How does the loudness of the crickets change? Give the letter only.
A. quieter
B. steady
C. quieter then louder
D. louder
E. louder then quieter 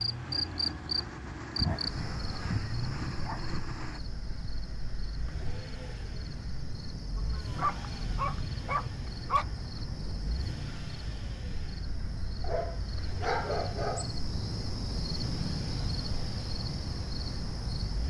C.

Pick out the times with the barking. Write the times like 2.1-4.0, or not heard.
1.6-3.6, 7.2-9.4, 12.4-14.1.